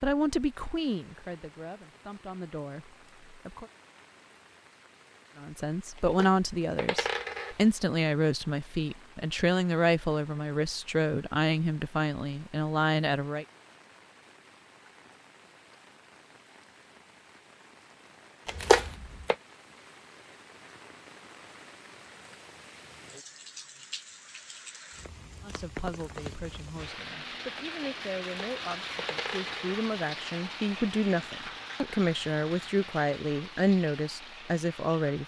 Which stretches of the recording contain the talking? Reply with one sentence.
You can hear the talking from 0.0 to 3.6 s, from 5.3 to 13.4 s and from 25.4 to 35.2 s.